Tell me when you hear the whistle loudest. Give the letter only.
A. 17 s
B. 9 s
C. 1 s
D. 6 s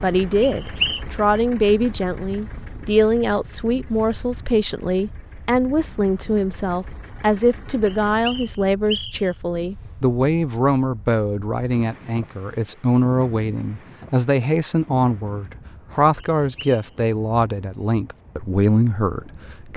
C.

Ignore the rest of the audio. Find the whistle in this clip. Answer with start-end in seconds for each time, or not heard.
0.4-1.0, 7.8-9.3, 16.2-16.9.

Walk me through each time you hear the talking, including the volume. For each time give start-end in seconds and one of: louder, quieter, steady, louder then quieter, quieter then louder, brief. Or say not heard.
0.0-19.7 steady.